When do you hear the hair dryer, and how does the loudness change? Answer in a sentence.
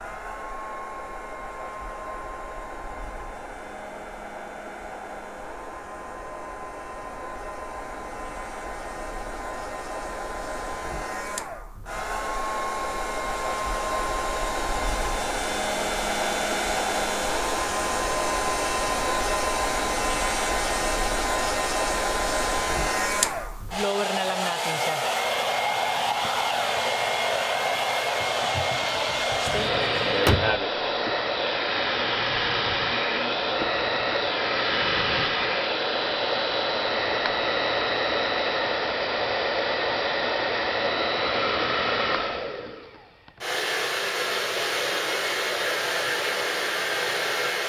The hair dryer can be heard from 0.0 to 47.6 s, getting louder.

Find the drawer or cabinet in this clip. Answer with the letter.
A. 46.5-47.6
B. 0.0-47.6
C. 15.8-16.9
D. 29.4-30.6
D.